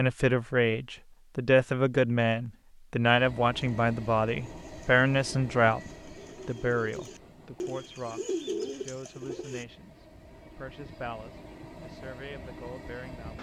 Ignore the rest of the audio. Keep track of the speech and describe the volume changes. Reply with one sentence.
The volume of the speech goes down.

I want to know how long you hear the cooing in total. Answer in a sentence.
The cooing can be heard for 6 seconds in total.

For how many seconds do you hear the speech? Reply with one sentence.
The speech can be heard for 13 seconds in total.